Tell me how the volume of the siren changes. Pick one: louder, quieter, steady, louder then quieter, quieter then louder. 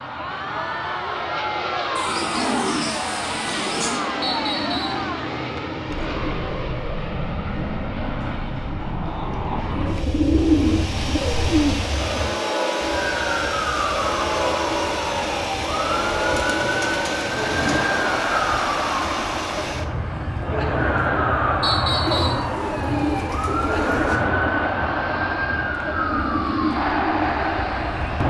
steady.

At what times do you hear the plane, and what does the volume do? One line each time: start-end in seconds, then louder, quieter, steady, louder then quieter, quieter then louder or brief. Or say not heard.
0.0-28.2 steady.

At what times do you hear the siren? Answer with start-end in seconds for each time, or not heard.
12.8-28.2.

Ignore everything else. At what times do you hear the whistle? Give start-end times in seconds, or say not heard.
4.2-5.0, 21.6-22.4.